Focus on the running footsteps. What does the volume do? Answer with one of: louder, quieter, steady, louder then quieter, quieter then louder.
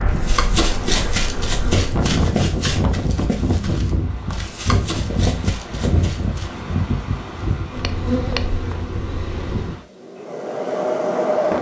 quieter.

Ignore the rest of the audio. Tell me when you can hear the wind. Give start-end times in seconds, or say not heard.
0.0-11.5.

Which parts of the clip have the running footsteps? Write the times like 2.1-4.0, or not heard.
0.2-6.7.